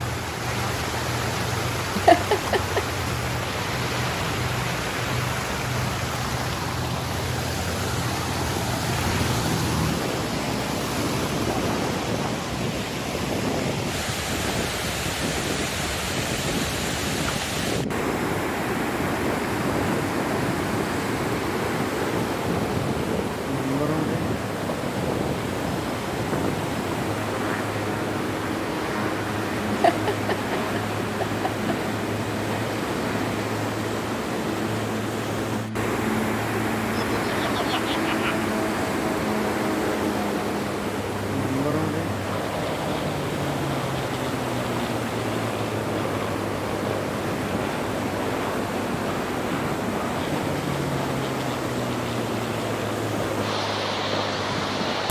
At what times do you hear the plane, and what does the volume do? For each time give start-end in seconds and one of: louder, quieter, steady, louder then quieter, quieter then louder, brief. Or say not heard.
0.0-55.0 steady.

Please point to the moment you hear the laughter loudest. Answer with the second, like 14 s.
2 s.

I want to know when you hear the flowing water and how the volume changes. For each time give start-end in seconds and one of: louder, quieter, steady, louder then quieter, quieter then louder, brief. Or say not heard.
0.0-55.0 steady.